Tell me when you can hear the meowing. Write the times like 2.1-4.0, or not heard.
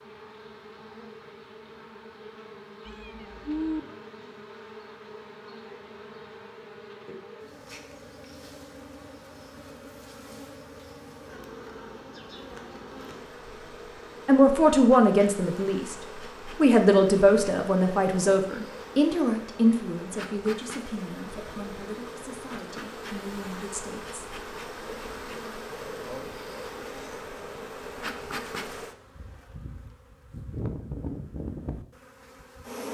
2.9-3.8.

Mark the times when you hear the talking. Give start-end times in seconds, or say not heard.
14.2-15.9, 16.6-24.2.